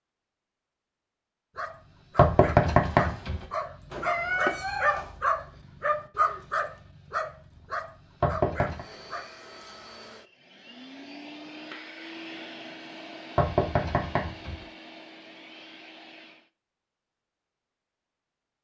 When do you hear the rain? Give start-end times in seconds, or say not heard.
not heard.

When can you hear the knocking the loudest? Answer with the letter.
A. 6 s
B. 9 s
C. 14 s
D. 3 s
D.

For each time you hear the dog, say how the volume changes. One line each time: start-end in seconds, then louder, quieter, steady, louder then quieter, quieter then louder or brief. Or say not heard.
1.6-9.2 louder then quieter.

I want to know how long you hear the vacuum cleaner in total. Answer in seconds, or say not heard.
8 s.